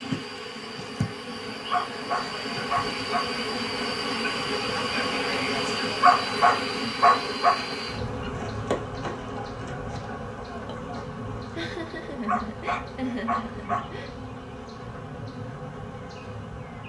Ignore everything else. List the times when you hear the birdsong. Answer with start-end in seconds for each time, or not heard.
not heard.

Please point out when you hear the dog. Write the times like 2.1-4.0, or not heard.
1.7-3.3, 6.0-7.6, 12.2-13.9.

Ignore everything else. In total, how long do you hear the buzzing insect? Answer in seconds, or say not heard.
17 s.